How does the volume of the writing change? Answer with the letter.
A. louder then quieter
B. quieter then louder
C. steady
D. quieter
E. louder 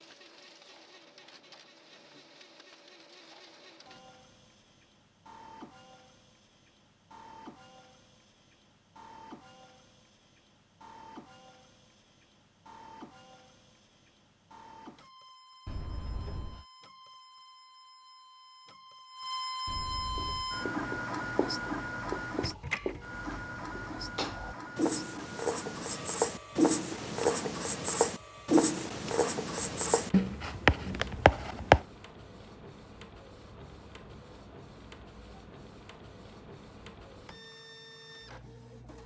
E.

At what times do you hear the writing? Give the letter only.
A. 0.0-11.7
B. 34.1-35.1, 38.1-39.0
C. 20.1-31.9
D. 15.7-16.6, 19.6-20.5
C.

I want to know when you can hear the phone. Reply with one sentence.
The phone can be heard from 15.7 to 16.6 s and from 19.6 to 20.5 s.